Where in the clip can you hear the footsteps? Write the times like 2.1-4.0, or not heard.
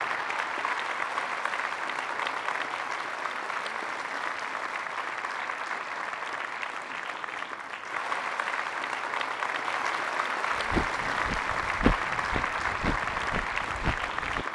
10.6-14.4.